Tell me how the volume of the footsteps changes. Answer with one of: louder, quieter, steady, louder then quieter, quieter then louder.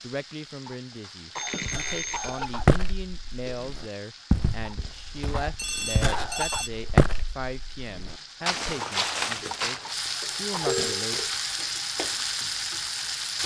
quieter then louder.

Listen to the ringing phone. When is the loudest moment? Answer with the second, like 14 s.
11 s.